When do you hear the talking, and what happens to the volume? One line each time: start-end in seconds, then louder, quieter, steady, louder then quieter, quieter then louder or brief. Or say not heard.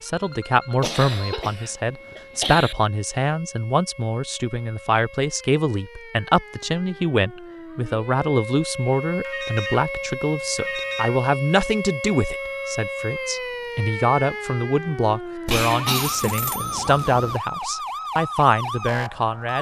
0.0-19.5 steady.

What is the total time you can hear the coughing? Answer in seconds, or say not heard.
3 s.